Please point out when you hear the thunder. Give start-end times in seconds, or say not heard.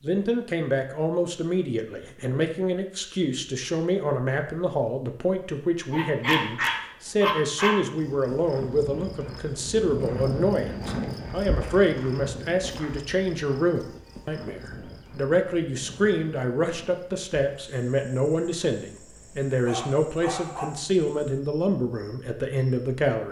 not heard.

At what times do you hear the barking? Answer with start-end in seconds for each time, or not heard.
5.9-7.8, 19.6-20.6.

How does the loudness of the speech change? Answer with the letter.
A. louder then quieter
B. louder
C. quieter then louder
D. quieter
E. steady
E.